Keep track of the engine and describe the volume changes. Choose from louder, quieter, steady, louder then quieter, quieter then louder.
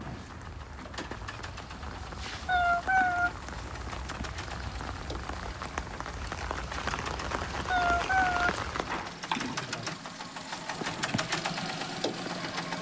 louder.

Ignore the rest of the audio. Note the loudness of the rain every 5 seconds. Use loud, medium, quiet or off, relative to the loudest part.
medium, loud, off.